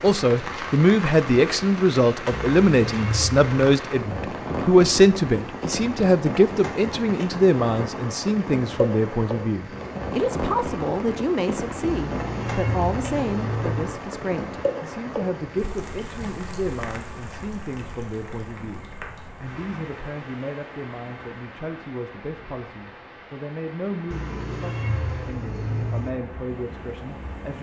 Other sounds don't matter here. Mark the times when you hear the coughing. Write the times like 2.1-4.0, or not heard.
not heard.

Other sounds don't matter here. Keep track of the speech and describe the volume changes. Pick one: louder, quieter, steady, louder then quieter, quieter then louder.
quieter.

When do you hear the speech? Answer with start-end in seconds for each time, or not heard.
0.0-27.5.